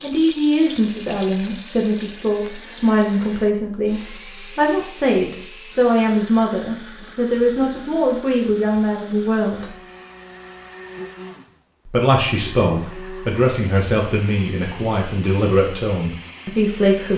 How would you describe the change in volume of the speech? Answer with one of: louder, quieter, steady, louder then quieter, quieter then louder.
steady.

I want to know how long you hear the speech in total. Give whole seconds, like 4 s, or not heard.
15 s.